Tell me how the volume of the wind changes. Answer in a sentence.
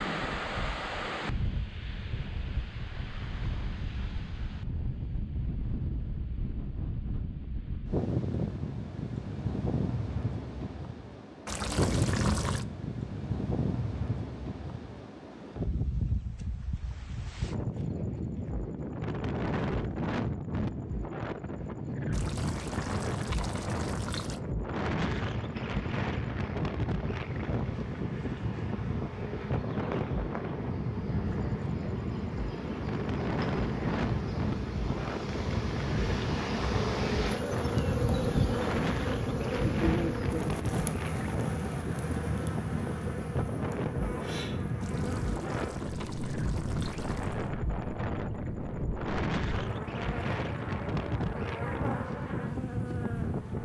The loudness of the wind stays about the same.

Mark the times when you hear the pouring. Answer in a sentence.
The pouring can be heard from 11.4 to 12.7 s, from 22.1 to 24.4 s and from 44.8 to 47.5 s.